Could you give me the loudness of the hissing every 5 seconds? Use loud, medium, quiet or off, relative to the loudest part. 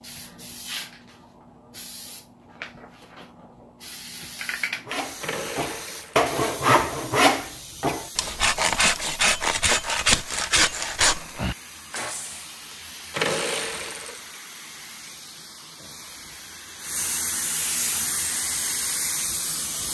medium, medium, medium, loud.